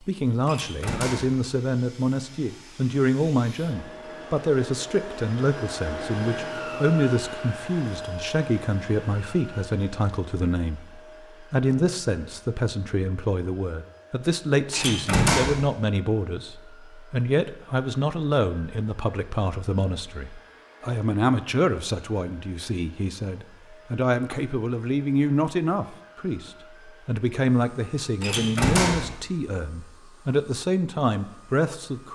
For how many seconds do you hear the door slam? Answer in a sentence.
The door slam can be heard for 3 seconds in total.